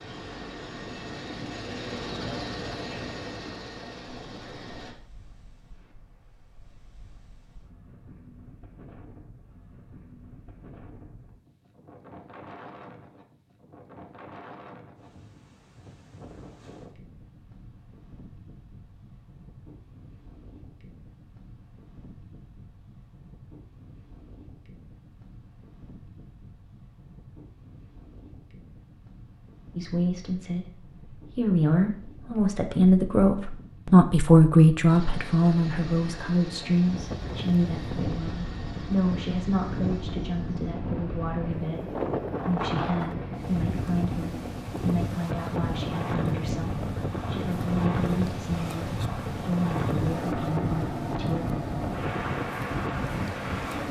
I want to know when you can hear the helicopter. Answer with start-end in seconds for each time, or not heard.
0.0-5.0, 34.9-53.8.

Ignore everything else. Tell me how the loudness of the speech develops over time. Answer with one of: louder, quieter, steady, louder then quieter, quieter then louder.
quieter.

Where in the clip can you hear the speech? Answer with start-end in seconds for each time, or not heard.
29.8-51.5.